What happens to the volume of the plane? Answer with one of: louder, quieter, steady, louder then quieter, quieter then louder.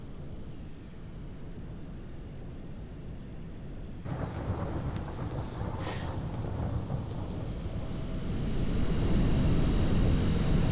louder.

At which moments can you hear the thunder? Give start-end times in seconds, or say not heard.
4.0-8.1.